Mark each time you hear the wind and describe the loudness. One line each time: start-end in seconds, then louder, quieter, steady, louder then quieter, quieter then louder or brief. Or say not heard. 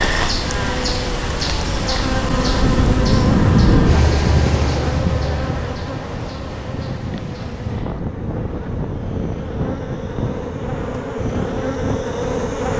0.0-12.7 louder then quieter.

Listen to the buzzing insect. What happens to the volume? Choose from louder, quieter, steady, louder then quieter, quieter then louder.
quieter then louder.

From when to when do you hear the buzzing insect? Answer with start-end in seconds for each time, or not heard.
0.0-12.7.